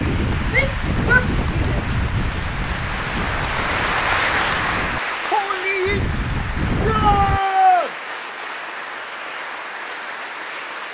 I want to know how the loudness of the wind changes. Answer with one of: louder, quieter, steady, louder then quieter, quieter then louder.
quieter then louder.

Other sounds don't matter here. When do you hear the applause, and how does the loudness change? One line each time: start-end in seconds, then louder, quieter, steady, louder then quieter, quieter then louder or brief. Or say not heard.
0.0-10.8 louder then quieter.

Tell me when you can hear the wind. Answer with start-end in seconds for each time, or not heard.
0.0-7.4.